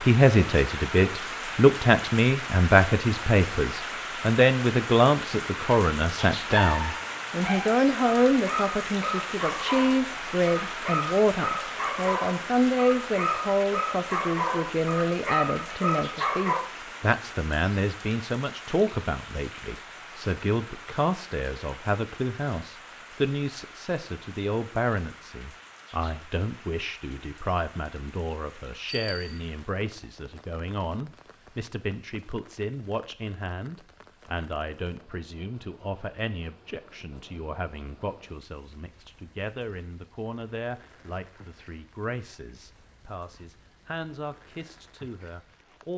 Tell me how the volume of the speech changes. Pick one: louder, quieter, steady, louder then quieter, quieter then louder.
quieter.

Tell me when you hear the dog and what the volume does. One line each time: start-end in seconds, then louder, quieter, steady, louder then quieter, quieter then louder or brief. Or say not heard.
6.4-16.6 steady.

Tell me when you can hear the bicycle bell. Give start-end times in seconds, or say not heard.
28.9-29.4.